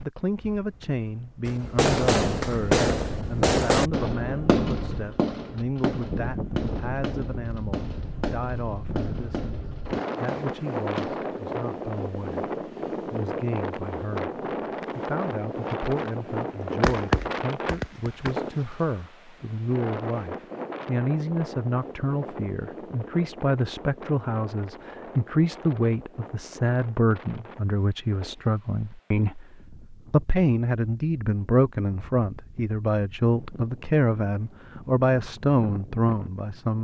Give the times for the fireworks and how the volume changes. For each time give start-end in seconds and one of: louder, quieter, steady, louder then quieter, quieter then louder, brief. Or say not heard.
1.4-11.4 quieter
16.8-18.4 brief.